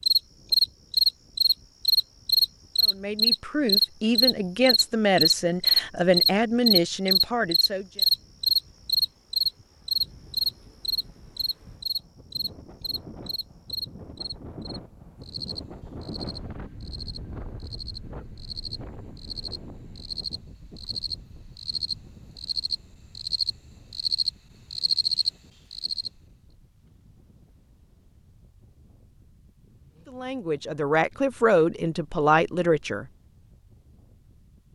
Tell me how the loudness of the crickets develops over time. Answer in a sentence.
The loudness of the crickets goes down, then up.